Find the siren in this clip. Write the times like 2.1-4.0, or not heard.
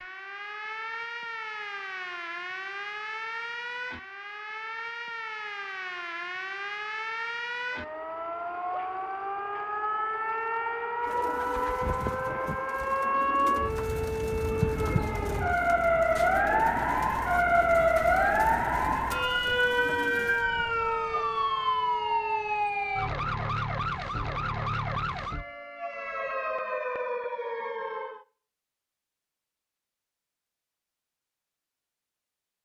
0.0-28.2.